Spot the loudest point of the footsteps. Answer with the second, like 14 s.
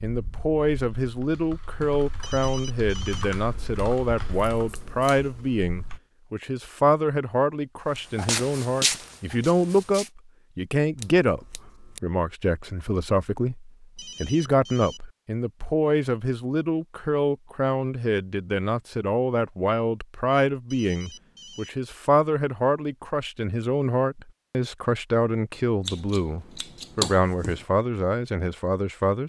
9 s.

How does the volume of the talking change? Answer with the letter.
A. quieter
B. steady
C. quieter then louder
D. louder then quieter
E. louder
B.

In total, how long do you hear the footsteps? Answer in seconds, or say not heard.
2 s.